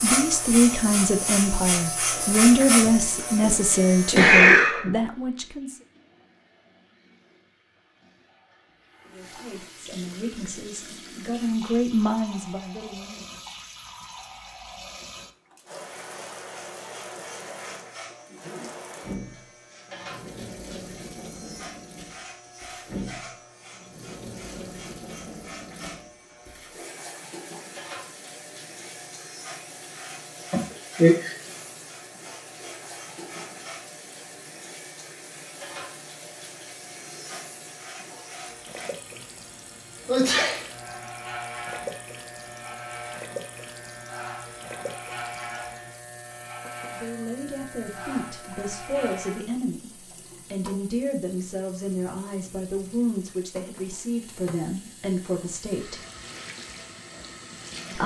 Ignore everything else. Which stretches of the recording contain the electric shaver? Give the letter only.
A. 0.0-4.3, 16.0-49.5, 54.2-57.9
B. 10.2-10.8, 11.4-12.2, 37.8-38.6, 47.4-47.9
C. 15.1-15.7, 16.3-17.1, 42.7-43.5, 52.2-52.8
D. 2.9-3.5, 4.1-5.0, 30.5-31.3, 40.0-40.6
A.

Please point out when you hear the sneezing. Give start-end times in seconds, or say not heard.
2.9-3.5, 4.1-5.0, 30.5-31.3, 40.0-40.6.